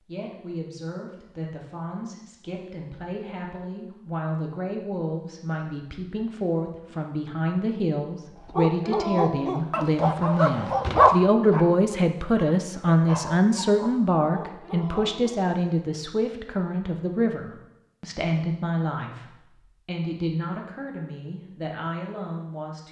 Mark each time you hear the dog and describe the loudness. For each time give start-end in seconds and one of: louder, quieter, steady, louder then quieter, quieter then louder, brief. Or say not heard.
8.4-15.4 louder then quieter.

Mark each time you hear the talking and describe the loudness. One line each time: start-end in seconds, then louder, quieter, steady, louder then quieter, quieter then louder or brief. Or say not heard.
0.1-22.8 louder then quieter.